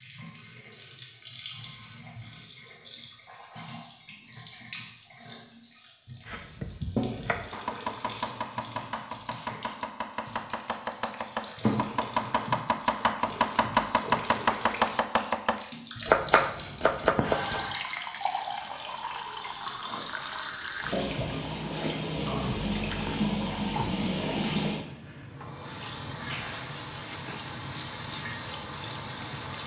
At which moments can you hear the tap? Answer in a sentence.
You can hear the tap from 0.0 to 29.6 s.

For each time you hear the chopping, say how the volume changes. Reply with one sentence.
The chopping can be heard from 6.2 to 17.8 s, getting louder.